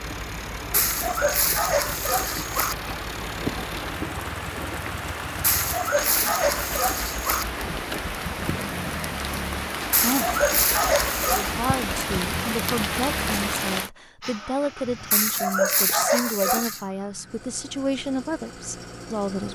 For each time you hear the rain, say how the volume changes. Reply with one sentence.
The rain can be heard from 0.0 to 13.9 s, getting louder.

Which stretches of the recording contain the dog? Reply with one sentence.
You can hear the dog from 0.7 to 2.8 s, from 5.4 to 7.5 s, from 9.9 to 11.6 s and from 15.1 to 16.8 s.